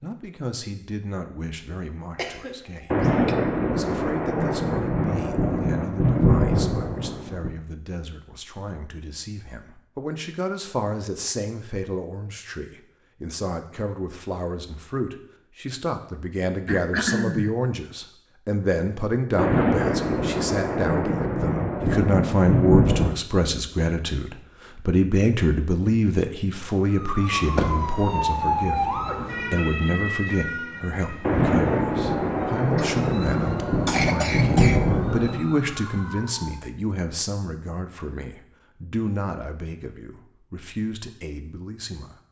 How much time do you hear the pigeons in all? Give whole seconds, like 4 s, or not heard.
not heard.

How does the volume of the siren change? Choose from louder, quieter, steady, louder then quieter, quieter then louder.
quieter.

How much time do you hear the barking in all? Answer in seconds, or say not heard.
not heard.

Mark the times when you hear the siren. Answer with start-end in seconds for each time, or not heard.
26.9-36.6.